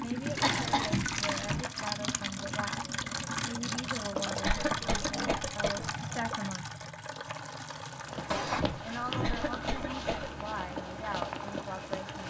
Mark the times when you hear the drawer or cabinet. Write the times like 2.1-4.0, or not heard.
0.3-1.6, 4.2-5.4, 8.3-9.3.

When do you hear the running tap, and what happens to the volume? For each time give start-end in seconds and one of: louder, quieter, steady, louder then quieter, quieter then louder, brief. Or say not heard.
0.0-12.2 quieter.